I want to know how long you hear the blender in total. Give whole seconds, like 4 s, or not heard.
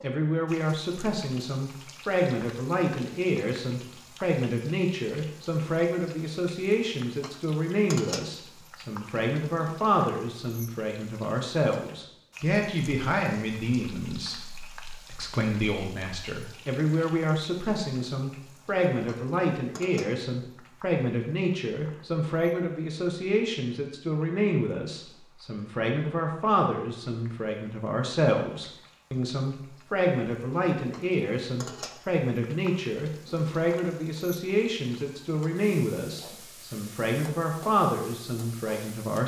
not heard.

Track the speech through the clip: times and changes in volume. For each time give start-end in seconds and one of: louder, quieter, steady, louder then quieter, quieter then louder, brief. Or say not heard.
0.0-39.2 steady.